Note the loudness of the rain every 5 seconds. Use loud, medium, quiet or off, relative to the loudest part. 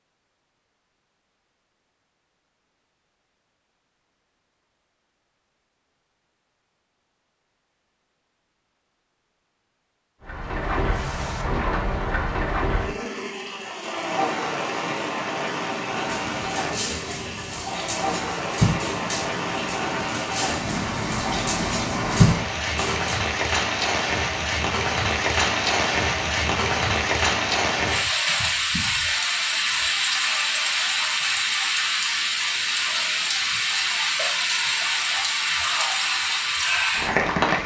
off, off, medium, medium, loud, loud, loud, loud.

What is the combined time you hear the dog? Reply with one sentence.
The dog can be heard for 7 seconds in total.